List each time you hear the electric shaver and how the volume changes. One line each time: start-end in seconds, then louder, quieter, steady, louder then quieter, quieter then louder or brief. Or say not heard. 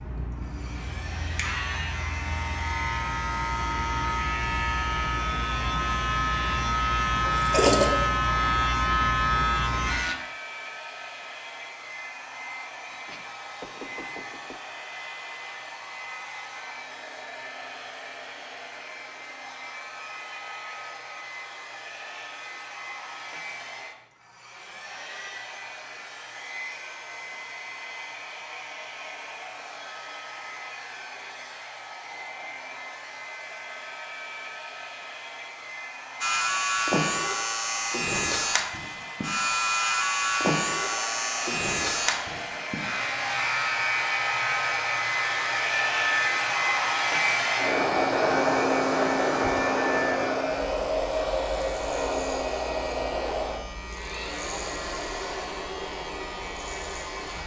0.0-10.2 louder
36.2-57.4 quieter.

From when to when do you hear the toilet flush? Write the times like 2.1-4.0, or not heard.
7.2-7.9.